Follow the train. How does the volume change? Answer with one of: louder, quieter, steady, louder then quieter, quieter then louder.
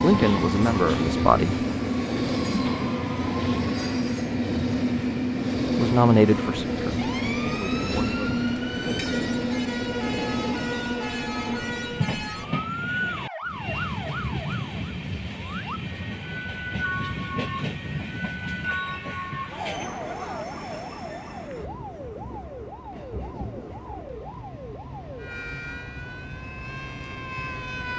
quieter.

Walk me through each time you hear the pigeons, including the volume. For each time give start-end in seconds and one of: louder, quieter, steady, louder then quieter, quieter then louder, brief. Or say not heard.
not heard.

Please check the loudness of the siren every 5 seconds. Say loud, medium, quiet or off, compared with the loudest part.
loud, loud, loud, loud, medium, loud.